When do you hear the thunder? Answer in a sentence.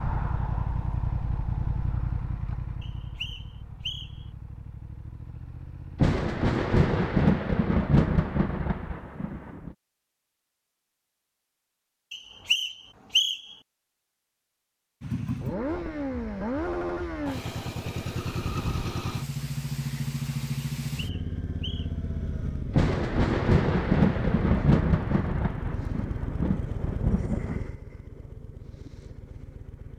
You can hear the thunder from 6.0 to 9.8 s and from 22.7 to 27.6 s.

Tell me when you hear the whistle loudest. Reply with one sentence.
The volume of the whistle peaks at 13 seconds.